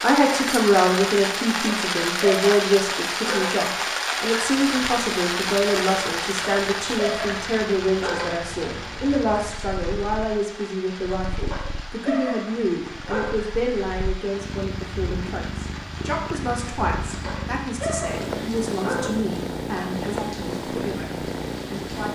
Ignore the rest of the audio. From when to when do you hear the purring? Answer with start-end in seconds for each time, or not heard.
4.4-22.1.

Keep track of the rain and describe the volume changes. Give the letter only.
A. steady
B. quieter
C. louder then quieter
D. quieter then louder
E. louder
B.